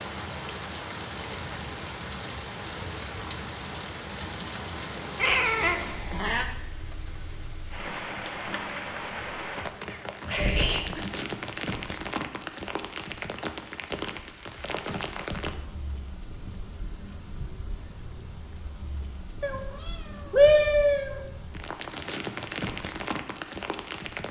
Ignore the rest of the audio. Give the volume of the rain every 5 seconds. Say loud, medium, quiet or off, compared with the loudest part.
loud, loud, loud, medium, loud.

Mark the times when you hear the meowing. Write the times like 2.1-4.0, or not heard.
5.2-6.5, 9.9-11.2, 19.4-21.1.